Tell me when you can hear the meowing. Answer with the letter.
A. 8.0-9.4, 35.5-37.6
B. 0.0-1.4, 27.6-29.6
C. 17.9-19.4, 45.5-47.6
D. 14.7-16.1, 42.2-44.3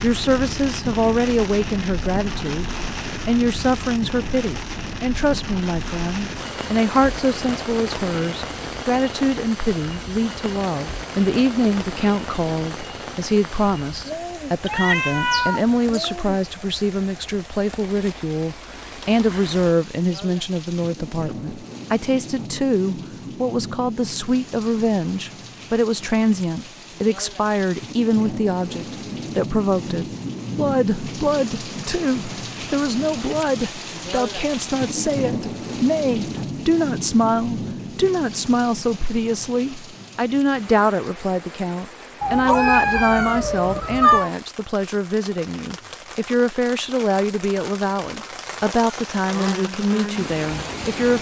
D.